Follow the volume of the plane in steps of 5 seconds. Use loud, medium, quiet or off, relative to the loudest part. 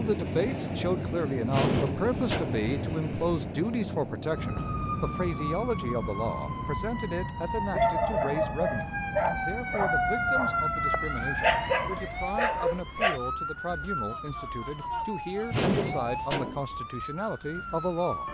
loud, medium, off, off.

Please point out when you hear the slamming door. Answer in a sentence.
You can hear the slamming door from 1.5 to 2.6 s and from 15.5 to 16.6 s.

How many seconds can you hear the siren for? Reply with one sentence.
The siren can be heard for 14 seconds in total.